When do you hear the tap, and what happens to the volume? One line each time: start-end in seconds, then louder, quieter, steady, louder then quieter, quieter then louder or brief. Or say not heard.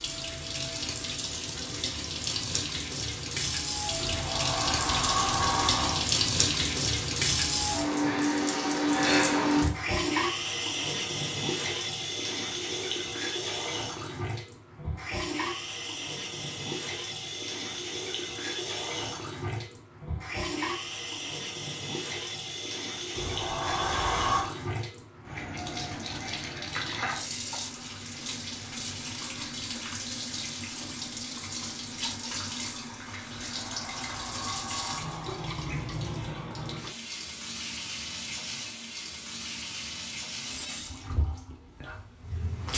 0.0-42.7 quieter.